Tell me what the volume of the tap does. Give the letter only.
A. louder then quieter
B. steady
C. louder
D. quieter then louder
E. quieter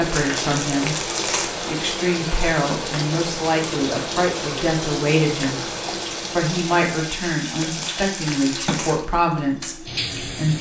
B.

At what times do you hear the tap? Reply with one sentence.
You can hear the tap from 0.0 to 10.5 s.